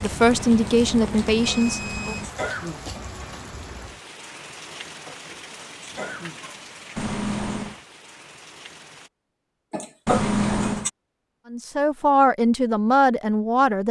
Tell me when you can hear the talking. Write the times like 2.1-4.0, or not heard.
0.0-2.1, 11.5-13.8.